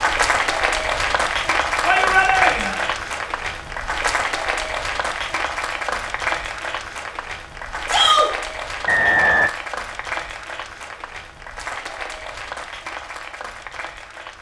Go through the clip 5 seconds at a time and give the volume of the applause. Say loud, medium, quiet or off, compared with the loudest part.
loud, medium, medium.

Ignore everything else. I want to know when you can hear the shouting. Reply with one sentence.
You can hear the shouting from 1.8 to 2.8 s and from 7.8 to 8.3 s.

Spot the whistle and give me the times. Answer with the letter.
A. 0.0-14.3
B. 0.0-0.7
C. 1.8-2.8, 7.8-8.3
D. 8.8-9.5
D.